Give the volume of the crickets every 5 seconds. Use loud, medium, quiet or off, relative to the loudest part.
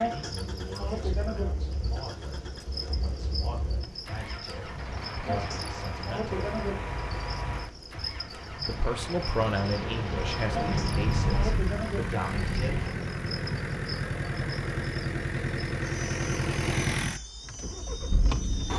loud, loud, loud, medium.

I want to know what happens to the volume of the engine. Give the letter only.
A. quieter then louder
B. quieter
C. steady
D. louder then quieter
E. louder
E.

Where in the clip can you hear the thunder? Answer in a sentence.
The thunder can be heard from 9.4 to 12.9 s.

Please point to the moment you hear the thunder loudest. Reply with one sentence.
The volume of the thunder peaks at 11 seconds.